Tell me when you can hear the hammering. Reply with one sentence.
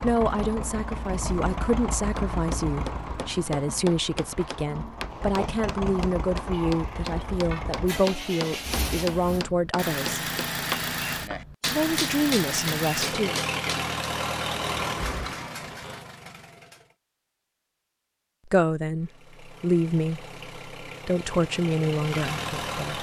The hammering can be heard from 2.1 to 13.8 s.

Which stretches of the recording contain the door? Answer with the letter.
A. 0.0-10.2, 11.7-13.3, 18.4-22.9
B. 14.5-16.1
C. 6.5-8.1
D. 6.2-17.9
B.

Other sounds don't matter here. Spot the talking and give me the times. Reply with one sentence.
The talking can be heard from 0.0 to 10.2 s, from 11.7 to 13.3 s and from 18.4 to 22.9 s.